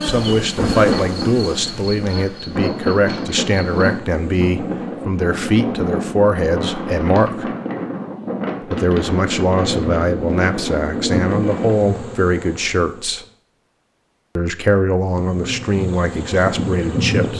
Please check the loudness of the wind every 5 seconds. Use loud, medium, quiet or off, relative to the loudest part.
loud, loud, loud, off.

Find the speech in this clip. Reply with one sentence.
The speech can be heard from 0.0 to 7.5 s, from 8.6 to 13.2 s and from 14.3 to 17.3 s.